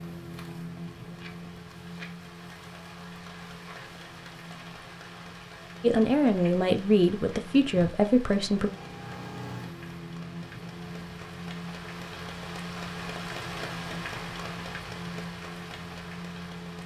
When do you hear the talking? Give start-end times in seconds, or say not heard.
5.8-8.7.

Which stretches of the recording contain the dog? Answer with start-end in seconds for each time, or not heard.
not heard.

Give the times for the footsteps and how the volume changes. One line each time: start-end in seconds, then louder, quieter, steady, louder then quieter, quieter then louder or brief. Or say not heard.
not heard.